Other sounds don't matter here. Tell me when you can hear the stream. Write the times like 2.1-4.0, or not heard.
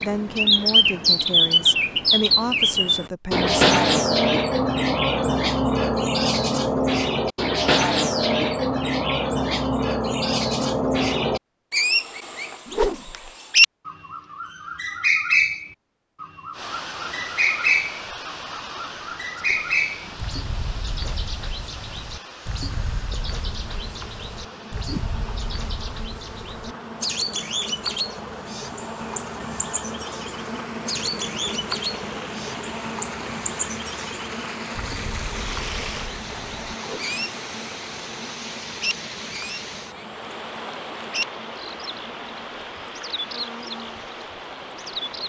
16.5-45.2.